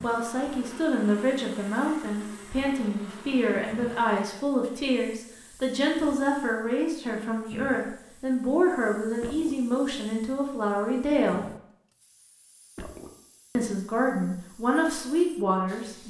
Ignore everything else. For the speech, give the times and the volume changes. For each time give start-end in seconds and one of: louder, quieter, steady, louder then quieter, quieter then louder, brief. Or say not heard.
0.0-11.4 steady
13.6-16.0 brief.